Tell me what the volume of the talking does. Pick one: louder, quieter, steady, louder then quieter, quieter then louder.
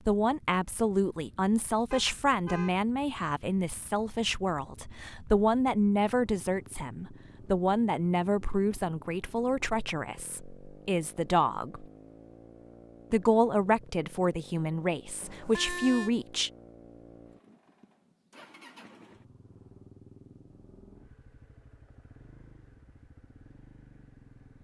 steady.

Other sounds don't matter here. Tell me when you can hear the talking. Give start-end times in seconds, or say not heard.
0.1-11.8, 13.1-16.5.